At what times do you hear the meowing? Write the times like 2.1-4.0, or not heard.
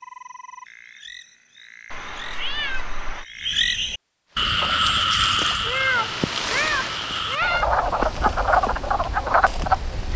1.9-3.2, 5.6-7.7.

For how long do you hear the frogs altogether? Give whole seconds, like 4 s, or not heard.
10 s.